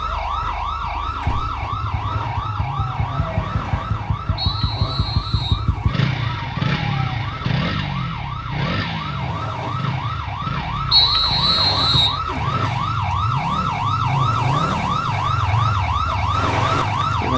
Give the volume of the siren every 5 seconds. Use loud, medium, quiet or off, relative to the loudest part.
medium, medium, loud, loud.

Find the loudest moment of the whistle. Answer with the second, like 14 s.
11 s.